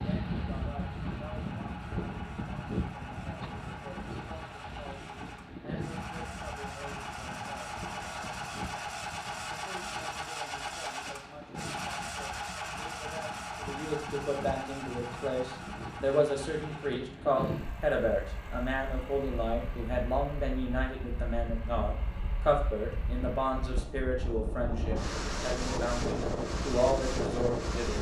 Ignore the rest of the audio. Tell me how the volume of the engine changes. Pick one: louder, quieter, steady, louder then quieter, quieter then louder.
louder then quieter.